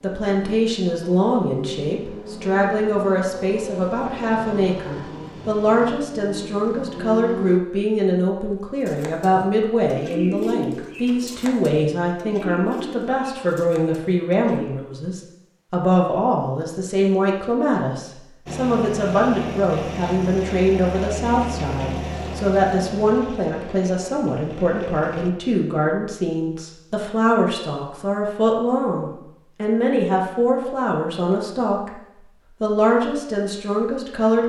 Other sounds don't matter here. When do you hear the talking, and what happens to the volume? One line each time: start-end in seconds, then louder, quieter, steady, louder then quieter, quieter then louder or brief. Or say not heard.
0.0-31.9 steady
32.6-34.4 brief.